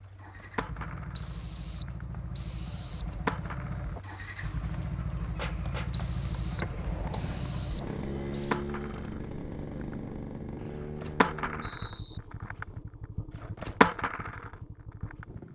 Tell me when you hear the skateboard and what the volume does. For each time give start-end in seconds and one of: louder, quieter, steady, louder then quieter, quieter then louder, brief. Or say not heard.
0.1-15.3 quieter then louder.